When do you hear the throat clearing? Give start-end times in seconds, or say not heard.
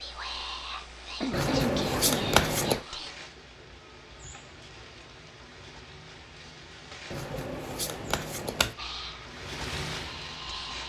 0.8-2.3.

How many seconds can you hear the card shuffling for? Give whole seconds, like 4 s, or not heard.
3 s.